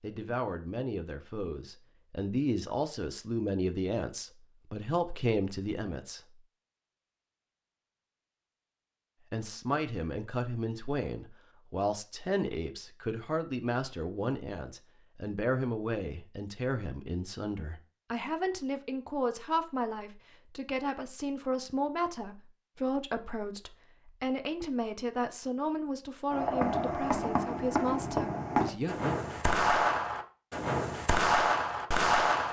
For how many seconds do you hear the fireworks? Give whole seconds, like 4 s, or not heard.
6 s.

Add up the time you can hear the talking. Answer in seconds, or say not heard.
26 s.